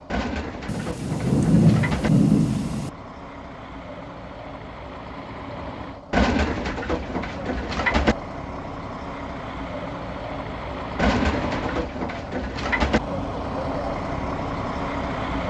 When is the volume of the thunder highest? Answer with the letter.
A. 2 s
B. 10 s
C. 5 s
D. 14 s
A.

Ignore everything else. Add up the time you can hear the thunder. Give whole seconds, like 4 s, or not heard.
2 s.